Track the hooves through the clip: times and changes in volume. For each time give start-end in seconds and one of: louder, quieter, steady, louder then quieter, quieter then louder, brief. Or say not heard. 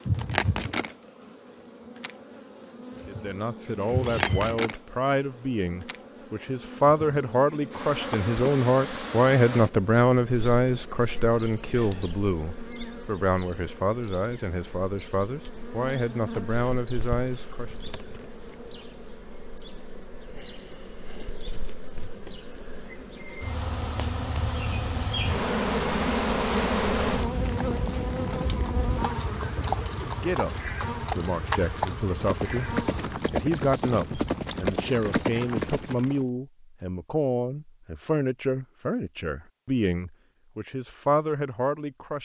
27.3-36.2 louder.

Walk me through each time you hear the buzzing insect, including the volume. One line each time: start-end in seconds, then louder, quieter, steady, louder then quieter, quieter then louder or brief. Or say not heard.
0.0-33.2 quieter then louder.